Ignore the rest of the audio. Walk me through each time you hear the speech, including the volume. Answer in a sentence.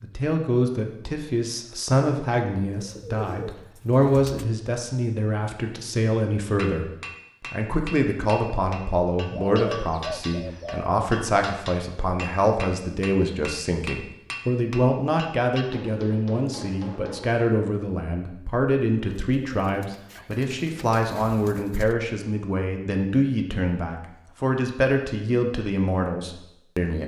You can hear the speech from 0.0 to 27.0 s, at a steady volume.